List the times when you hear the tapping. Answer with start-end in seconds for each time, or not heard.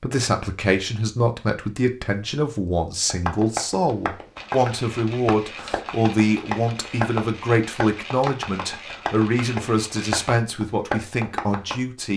3.0-11.8.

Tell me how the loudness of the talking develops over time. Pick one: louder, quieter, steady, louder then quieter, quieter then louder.
steady.